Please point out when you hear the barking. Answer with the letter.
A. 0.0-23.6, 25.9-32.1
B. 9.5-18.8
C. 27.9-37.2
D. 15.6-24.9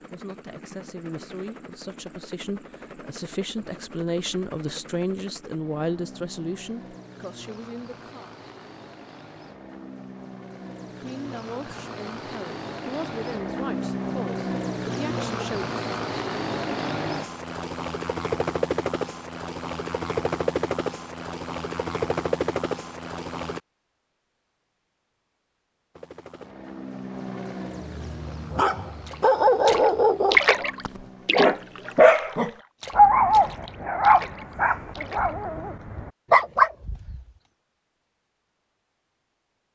C.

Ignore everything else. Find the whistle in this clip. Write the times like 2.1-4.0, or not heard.
not heard.